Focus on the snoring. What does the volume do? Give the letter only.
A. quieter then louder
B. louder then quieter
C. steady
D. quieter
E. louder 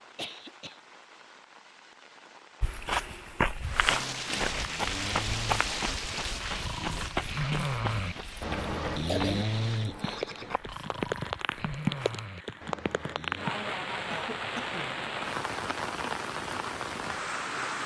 B.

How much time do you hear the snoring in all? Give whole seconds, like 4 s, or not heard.
9 s.